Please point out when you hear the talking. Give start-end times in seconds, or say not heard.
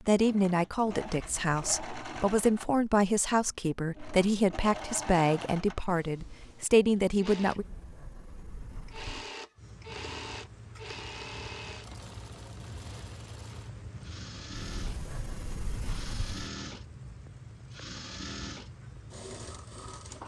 0.1-7.7.